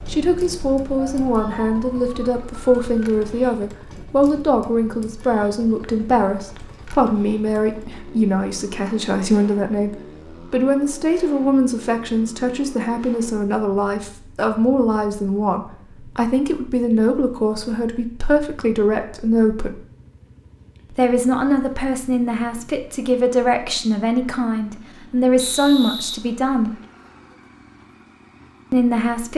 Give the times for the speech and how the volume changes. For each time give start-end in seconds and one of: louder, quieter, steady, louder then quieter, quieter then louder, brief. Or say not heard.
0.1-9.9 steady
10.5-19.8 steady
20.9-26.7 steady
28.7-29.3 brief.